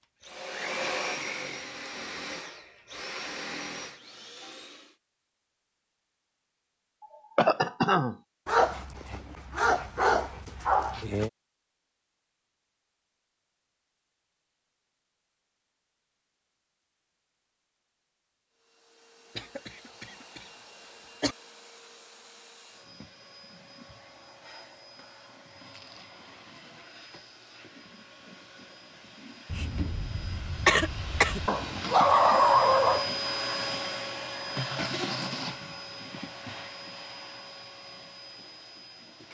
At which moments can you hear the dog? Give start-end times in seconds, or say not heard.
8.4-11.3, 31.4-33.1.